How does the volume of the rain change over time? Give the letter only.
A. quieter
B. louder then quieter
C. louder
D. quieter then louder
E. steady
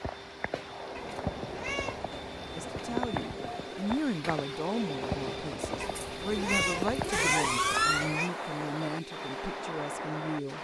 E.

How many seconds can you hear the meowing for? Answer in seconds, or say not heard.
4 s.